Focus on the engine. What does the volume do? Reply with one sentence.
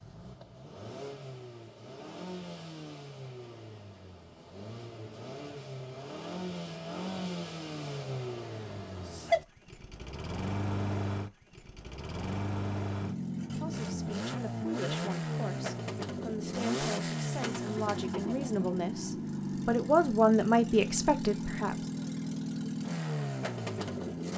The loudness of the engine goes up.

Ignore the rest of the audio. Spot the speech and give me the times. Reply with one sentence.
The speech can be heard from 13.4 to 21.8 s.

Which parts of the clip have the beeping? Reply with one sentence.
The beeping can't be heard in this clip.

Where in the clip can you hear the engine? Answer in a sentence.
You can hear the engine from 0.0 to 24.3 s.